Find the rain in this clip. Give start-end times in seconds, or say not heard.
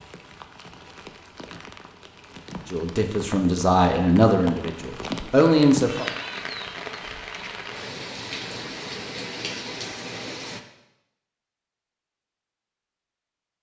0.0-10.6.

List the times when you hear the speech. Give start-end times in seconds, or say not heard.
2.7-6.0.